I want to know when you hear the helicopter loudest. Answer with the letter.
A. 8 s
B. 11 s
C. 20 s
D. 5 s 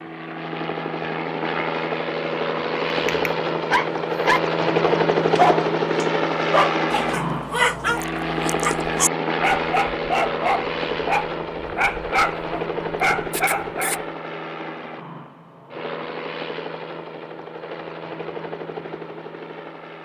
D.